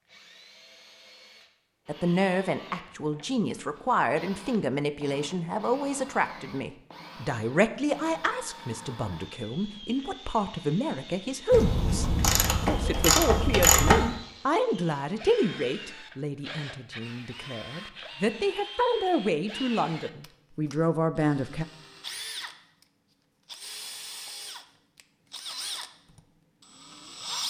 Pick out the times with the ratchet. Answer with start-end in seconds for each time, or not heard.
11.5-14.2.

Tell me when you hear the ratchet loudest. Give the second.
14 s.